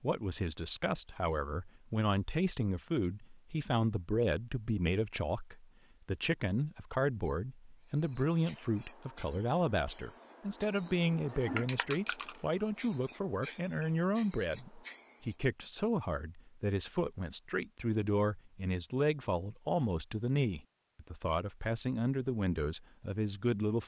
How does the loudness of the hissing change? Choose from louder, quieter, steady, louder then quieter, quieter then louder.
steady.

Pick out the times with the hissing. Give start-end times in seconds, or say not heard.
7.8-15.3.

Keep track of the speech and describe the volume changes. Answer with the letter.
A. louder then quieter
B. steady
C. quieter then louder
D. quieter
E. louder
B.